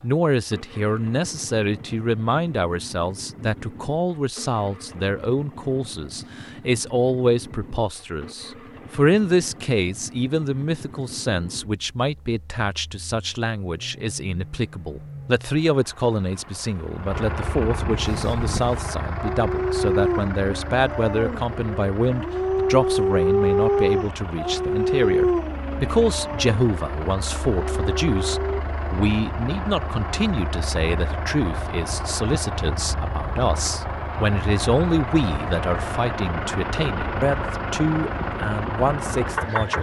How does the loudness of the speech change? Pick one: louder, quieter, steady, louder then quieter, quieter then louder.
steady.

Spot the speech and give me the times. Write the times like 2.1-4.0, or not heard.
0.0-39.7.